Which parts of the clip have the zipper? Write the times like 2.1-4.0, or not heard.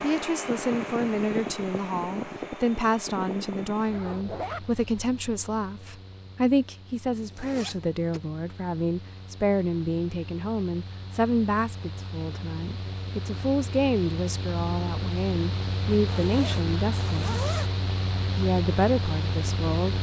3.9-4.7, 7.1-8.2, 16.1-17.7.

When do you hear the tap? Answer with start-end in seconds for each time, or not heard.
not heard.